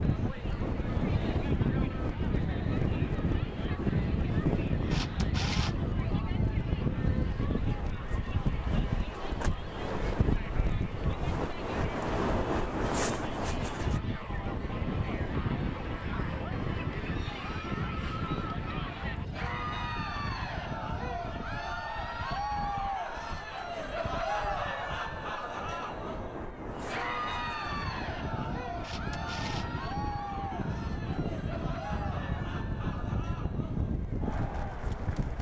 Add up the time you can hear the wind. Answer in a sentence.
The wind can be heard for 35 seconds in total.